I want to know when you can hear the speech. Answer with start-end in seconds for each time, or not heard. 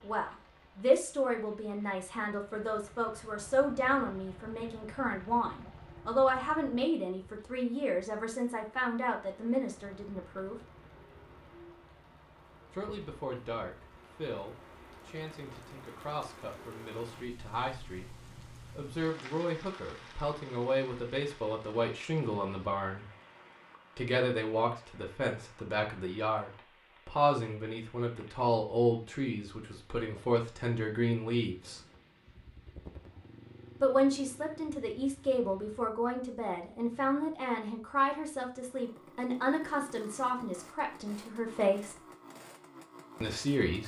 0.0-10.6, 12.7-23.1, 23.9-31.8, 33.8-42.0, 43.2-43.8.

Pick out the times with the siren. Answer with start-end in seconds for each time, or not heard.
not heard.